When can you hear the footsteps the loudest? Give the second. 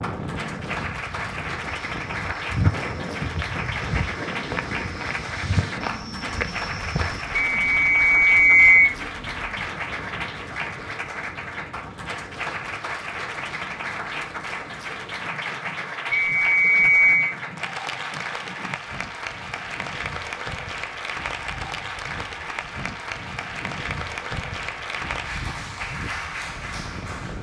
3 s.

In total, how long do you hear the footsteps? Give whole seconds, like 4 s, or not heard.
6 s.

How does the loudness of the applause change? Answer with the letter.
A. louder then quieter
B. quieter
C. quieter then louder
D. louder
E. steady
E.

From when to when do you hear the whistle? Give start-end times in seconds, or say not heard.
7.6-8.9, 16.1-17.4.